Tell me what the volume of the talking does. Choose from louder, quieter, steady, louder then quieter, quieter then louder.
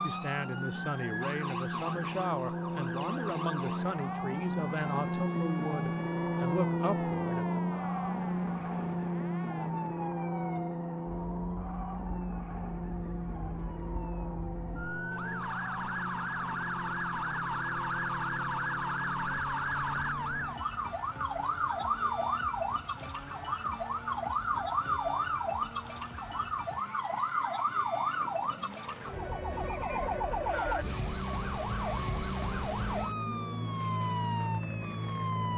steady.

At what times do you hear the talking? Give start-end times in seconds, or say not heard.
0.0-7.6.